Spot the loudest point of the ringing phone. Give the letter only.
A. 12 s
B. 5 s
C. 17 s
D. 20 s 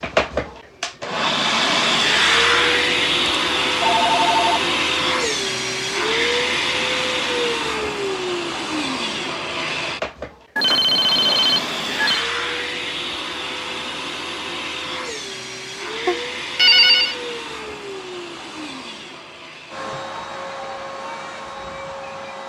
C.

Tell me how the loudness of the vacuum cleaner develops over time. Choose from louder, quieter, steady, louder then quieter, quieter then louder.
quieter.